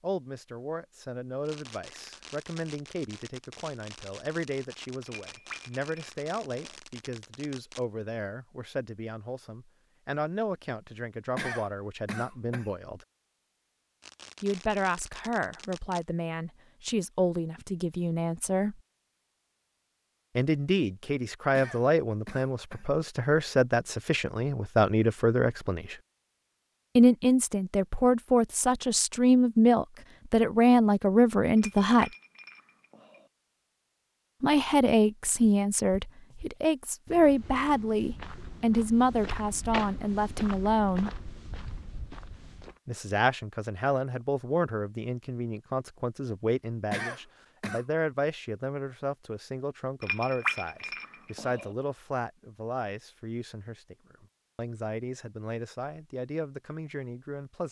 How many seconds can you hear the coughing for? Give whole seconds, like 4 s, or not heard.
4 s.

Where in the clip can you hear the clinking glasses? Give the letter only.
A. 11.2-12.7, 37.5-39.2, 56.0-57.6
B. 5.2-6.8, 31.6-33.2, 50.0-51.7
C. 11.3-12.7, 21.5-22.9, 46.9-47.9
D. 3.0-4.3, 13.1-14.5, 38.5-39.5
B.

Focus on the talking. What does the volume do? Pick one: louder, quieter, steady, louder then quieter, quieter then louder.
louder then quieter.